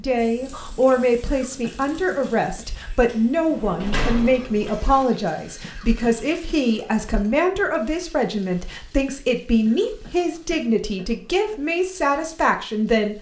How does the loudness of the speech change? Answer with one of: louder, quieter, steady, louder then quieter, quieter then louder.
steady.